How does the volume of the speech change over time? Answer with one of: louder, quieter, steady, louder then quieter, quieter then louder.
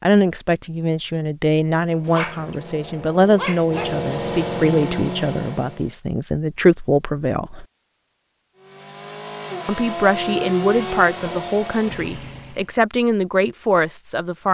steady.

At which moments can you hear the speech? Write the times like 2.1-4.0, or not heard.
0.0-7.7, 9.7-14.4.